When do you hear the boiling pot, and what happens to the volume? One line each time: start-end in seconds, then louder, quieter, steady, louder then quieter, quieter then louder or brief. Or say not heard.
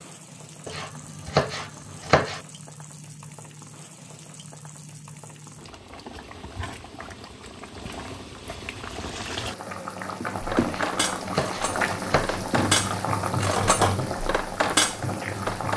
0.0-15.7 louder.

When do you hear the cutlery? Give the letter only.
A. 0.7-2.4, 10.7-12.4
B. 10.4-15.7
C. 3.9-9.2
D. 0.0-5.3
B.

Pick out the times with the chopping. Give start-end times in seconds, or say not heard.
0.7-2.4, 10.7-12.4.